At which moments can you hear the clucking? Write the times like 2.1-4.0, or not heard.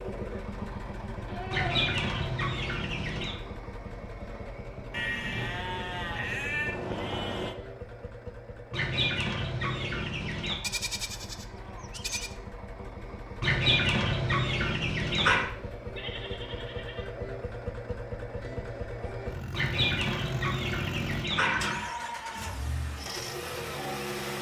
1.5-3.4, 8.7-10.6, 13.4-15.4, 19.5-21.9.